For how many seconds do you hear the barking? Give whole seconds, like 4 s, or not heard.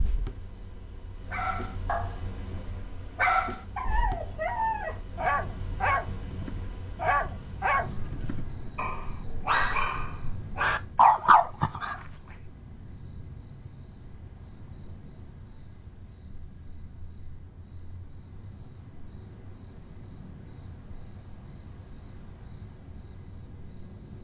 11 s.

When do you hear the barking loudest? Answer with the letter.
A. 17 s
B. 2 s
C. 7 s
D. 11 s
D.